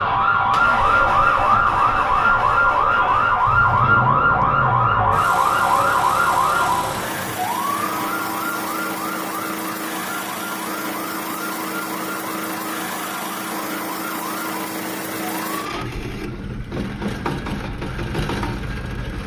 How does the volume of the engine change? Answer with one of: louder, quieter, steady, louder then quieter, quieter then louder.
steady.